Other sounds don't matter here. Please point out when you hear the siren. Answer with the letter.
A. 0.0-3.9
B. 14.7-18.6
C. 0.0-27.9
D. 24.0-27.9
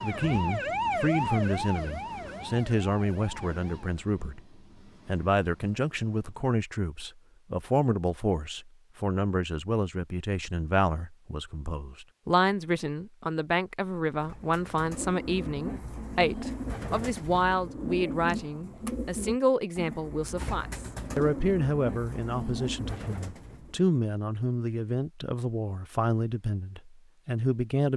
A.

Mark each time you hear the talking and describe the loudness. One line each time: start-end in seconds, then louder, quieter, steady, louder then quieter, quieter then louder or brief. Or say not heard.
0.0-27.9 steady.